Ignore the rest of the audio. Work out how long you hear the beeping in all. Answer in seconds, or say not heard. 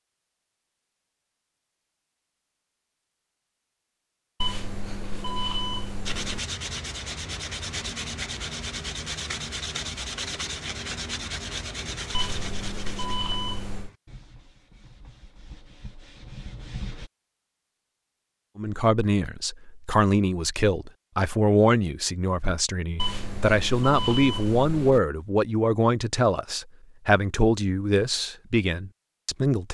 6 s.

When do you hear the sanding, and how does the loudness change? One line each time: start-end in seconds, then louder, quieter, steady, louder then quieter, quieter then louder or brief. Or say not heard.
6.0-17.1 quieter.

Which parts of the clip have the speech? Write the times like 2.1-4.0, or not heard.
18.6-29.6.